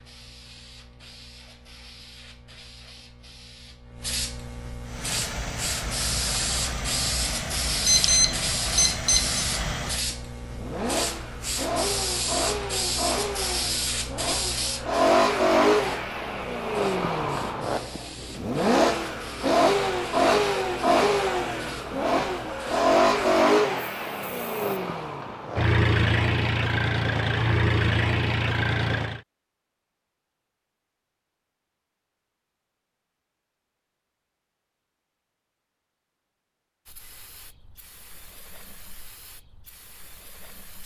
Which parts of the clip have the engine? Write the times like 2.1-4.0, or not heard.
4.8-29.2.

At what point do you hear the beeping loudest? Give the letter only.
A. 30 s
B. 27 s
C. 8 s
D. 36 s
C.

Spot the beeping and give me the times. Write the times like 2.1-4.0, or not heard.
7.8-9.4.